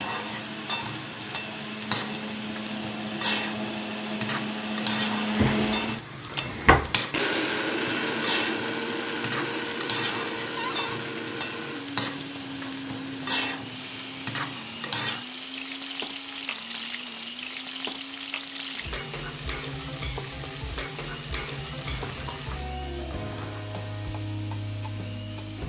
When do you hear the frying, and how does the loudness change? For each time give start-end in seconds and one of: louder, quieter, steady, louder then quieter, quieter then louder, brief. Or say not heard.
0.0-25.6 steady.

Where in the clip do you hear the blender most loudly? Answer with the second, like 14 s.
8 s.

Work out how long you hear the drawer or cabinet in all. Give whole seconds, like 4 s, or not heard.
4 s.